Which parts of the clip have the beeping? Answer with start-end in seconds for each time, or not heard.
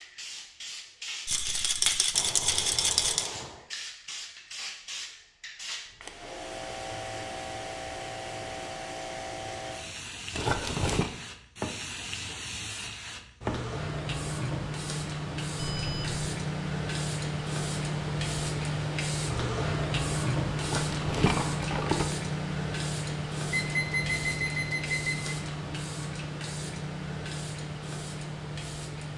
2.1-3.6, 15.6-16.2, 23.5-25.4.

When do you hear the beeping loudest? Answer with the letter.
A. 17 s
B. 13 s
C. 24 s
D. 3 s
C.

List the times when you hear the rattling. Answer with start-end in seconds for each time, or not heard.
1.2-3.3, 10.3-11.1, 20.6-22.1.